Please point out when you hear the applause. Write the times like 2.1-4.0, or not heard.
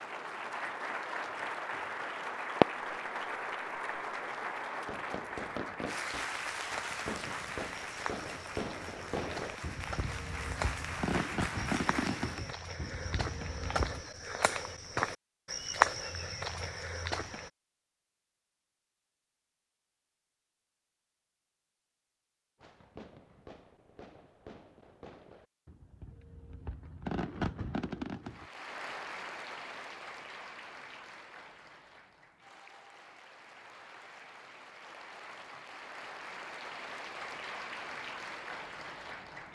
0.0-12.6, 28.2-39.5.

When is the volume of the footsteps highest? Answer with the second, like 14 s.
16 s.